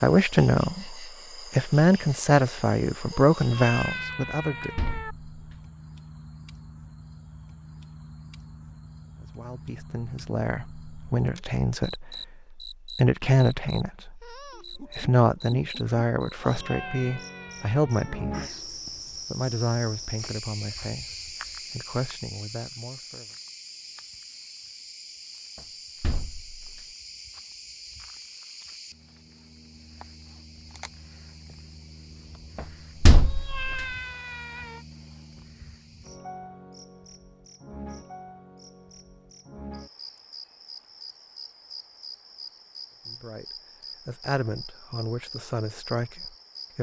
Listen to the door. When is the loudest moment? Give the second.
33 s.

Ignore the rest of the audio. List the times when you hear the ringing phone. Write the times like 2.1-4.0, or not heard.
not heard.